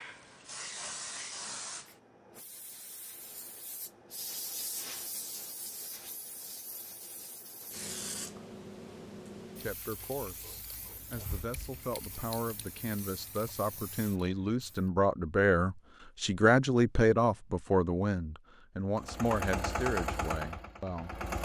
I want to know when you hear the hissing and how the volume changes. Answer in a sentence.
You can hear the hissing from 0.0 to 14.8 s, getting quieter.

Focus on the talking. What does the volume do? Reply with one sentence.
The loudness of the talking goes up, then down.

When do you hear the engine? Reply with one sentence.
You can hear the engine from 18.9 to 21.4 s.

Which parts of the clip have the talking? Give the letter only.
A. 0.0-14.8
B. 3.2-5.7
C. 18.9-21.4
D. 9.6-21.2
D.